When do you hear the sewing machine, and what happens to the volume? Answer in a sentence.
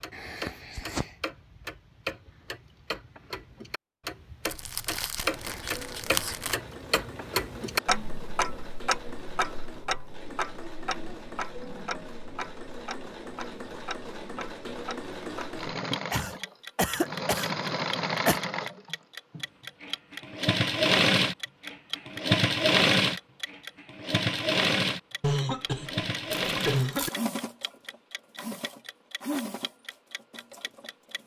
The sewing machine can be heard from 5.2 to 31.2 s, getting louder then quieter.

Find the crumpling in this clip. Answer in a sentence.
You can hear the crumpling from 4.5 to 6.5 s and from 26.3 to 27.3 s.